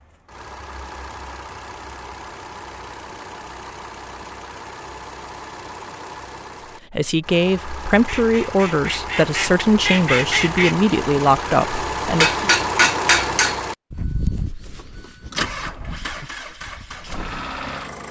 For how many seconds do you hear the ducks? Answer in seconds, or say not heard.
3 s.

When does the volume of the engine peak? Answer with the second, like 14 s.
13 s.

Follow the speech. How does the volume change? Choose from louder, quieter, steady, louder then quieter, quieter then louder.
steady.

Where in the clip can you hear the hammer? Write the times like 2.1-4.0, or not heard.
11.8-13.6.